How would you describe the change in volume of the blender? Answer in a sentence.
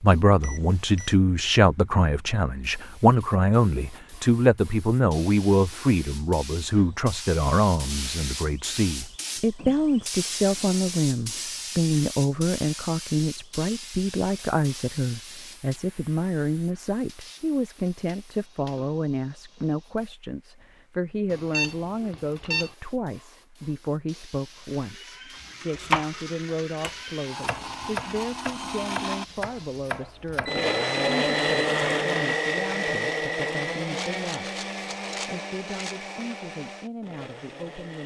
The loudness of the blender goes up, then down.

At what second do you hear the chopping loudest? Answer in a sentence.
The volume of the chopping peaks at 26 seconds.